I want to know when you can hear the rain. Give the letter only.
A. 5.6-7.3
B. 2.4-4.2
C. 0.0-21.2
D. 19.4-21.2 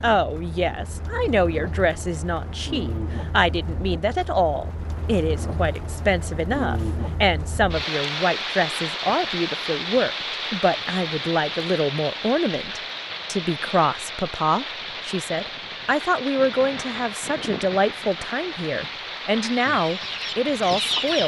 C.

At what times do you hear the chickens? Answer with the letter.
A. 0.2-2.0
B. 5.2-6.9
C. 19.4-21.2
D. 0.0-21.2
C.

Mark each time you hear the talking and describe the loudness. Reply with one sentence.
The talking can be heard from 0.0 to 21.2 s, at a steady volume.